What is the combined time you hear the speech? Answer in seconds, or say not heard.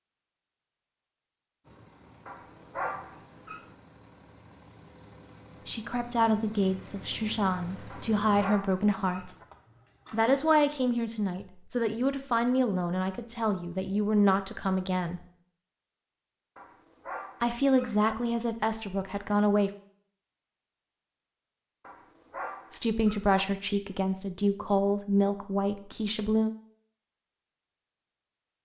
15 s.